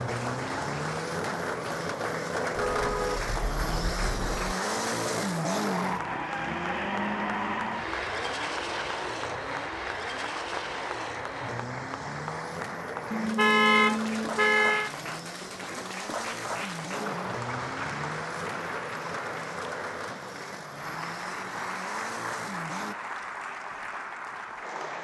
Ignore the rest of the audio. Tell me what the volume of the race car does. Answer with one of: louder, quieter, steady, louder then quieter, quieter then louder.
quieter.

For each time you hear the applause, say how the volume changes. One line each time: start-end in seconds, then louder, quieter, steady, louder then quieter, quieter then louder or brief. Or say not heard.
0.0-24.9 steady.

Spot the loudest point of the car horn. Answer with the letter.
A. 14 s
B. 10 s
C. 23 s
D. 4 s
A.